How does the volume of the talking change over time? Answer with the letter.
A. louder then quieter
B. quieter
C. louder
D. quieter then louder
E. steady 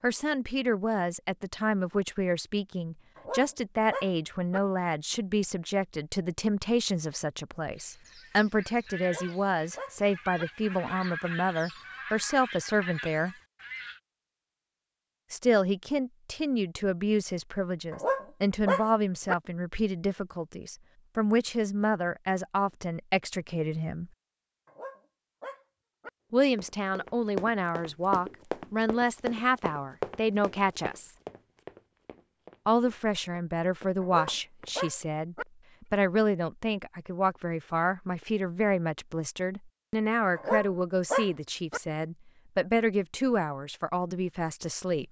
E.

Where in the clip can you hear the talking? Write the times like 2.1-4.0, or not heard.
0.0-13.3, 15.3-24.1, 26.3-31.1, 32.6-45.0.